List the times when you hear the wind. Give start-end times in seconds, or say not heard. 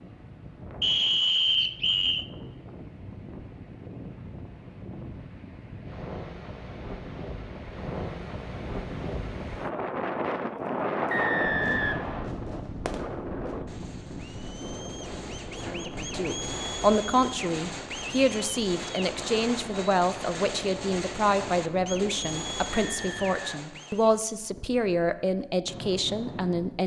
0.0-26.8.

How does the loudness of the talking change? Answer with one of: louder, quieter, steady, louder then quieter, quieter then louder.
steady.